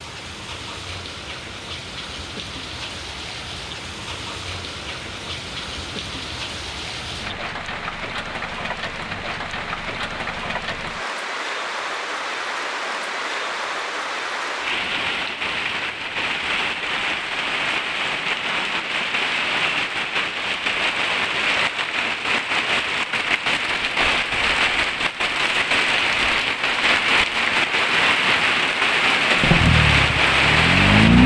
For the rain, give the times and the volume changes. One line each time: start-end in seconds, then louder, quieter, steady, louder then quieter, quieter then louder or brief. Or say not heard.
0.0-31.2 louder.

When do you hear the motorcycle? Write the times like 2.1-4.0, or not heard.
29.4-31.2.